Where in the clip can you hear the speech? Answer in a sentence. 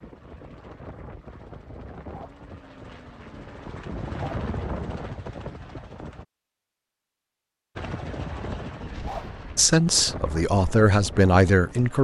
The speech can be heard from 9.6 to 12.0 s.